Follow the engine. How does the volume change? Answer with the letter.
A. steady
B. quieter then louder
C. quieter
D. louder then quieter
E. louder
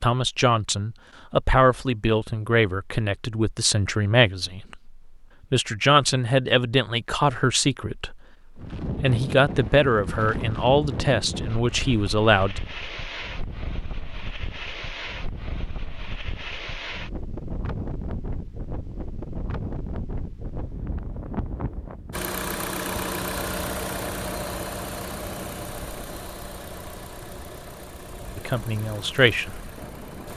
C.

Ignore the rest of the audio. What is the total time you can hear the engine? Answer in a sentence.
You can hear the engine for 8 seconds altogether.